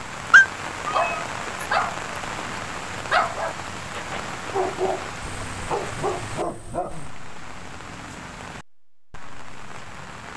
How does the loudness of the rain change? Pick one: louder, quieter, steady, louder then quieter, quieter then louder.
quieter.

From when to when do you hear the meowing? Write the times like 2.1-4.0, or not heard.
0.3-1.6.